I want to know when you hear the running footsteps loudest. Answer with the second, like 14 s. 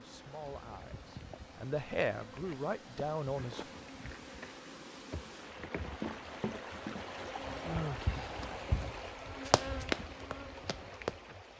10 s.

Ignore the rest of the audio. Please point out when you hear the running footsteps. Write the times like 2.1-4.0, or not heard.
5.9-11.5.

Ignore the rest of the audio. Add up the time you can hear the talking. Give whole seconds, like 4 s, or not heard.
4 s.